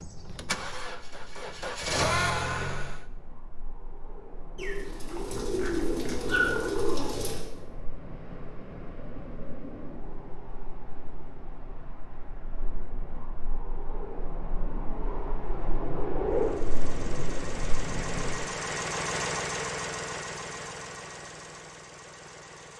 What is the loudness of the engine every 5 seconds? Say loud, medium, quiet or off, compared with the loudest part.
loud, off, off, loud, medium.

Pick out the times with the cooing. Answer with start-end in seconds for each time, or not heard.
4.5-7.5.